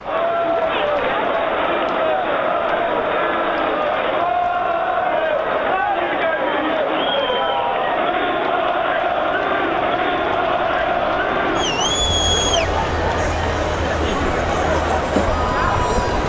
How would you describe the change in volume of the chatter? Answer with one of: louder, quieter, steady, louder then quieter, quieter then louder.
steady.